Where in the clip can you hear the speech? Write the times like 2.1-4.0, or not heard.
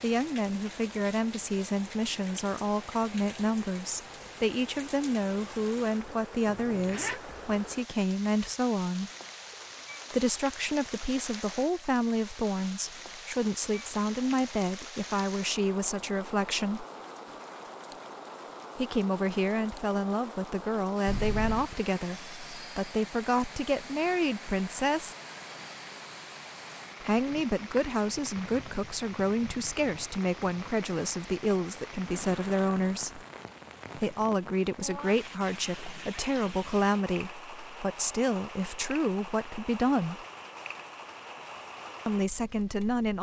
0.0-9.1, 10.1-16.9, 18.8-25.1, 27.0-33.2, 34.0-40.2, 42.0-43.1.